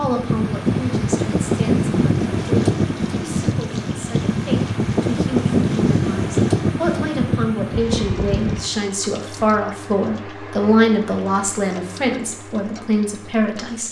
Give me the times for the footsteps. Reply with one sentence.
You can't hear the footsteps here.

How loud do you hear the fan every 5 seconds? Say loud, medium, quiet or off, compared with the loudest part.
loud, loud, off.